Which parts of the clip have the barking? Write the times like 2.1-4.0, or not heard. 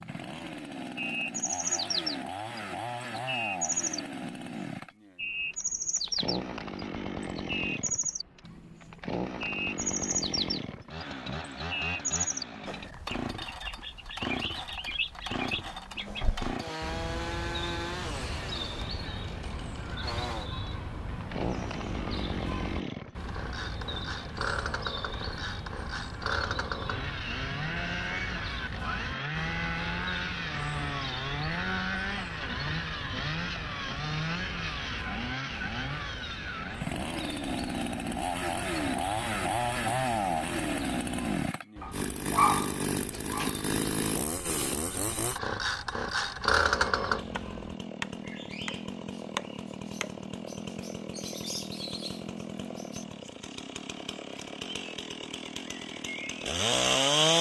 41.8-43.6.